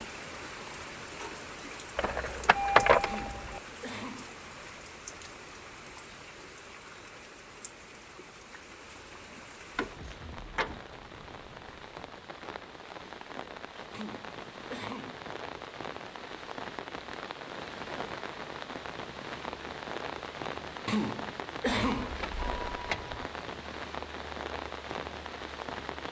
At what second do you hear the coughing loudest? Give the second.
22 s.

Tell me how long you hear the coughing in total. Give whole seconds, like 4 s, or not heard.
4 s.